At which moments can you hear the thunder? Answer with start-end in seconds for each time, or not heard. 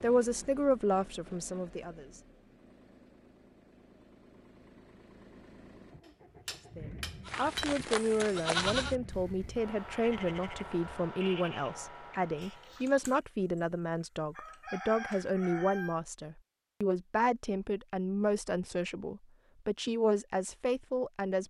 not heard.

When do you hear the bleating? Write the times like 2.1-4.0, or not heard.
7.2-13.2.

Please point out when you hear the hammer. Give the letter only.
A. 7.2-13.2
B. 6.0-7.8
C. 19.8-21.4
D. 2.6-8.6
B.